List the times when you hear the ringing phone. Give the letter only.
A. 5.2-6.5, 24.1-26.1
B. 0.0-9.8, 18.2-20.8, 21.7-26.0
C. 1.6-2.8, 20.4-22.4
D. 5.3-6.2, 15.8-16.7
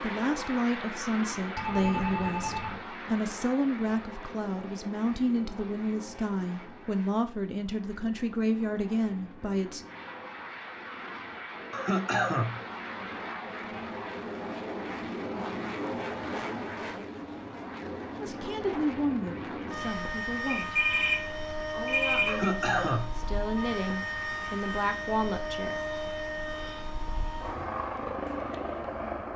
C.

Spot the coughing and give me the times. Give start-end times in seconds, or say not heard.
11.7-12.6, 22.2-23.1.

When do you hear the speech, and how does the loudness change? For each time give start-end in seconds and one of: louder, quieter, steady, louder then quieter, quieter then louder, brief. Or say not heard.
0.0-9.8 steady
18.2-20.8 brief
21.7-26.0 louder.